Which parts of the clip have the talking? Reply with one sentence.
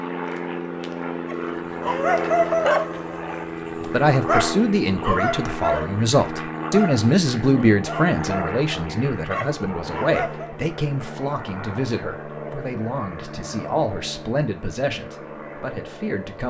The talking can be heard from 3.9 to 16.4 s.